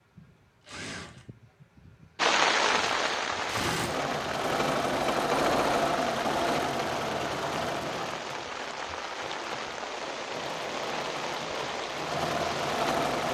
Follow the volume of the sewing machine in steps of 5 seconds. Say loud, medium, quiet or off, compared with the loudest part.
medium, loud, loud.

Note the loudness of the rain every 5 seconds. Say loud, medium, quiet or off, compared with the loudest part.
loud, medium, medium.